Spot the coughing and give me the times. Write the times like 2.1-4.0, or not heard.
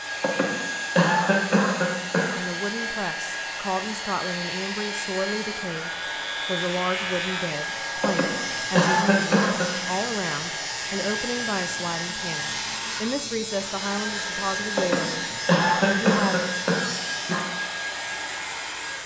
0.2-2.4, 8.0-9.7, 14.8-17.4.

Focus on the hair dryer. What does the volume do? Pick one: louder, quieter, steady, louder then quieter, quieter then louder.
steady.